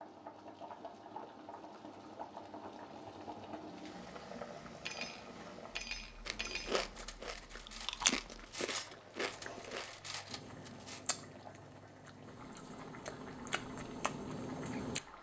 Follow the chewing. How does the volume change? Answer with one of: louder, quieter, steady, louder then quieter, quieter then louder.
quieter then louder.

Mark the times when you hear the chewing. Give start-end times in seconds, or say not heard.
6.2-15.0.